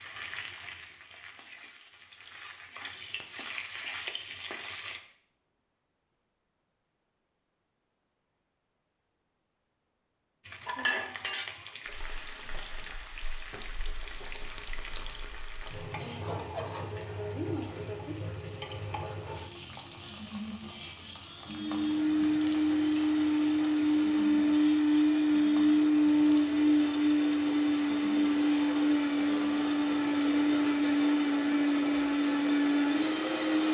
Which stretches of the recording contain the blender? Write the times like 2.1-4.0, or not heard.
21.4-33.6.